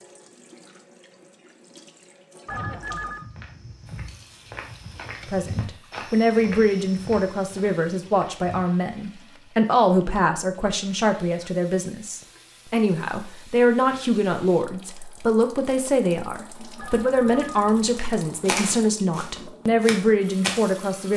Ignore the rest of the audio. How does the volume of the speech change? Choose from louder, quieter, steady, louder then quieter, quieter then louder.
steady.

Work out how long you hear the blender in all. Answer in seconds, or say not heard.
not heard.